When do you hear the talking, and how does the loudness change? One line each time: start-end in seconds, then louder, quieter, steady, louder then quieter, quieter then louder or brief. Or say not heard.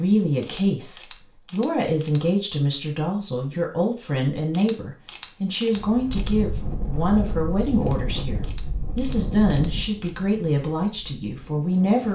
0.0-12.0 steady.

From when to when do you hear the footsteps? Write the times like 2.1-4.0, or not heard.
not heard.